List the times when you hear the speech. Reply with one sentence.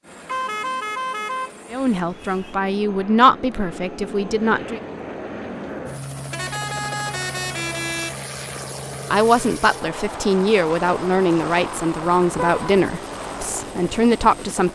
You can hear the speech from 1.7 to 4.8 s and from 9.1 to 14.7 s.